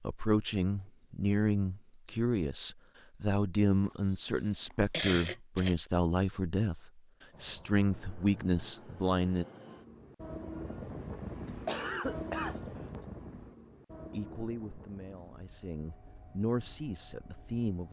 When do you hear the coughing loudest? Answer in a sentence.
The volume of the coughing peaks at 5 seconds.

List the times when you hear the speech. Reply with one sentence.
The speech can be heard from 0.0 to 9.4 s and from 14.1 to 17.8 s.